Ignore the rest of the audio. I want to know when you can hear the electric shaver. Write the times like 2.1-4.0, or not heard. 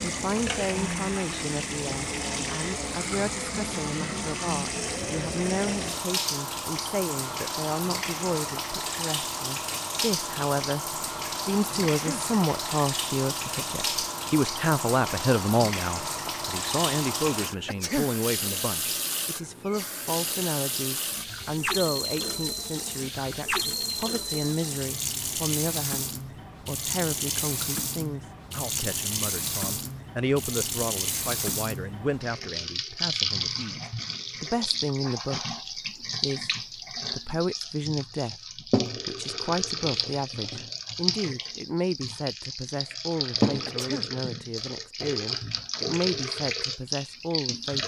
not heard.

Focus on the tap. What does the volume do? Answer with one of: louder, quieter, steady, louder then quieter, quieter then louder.
steady.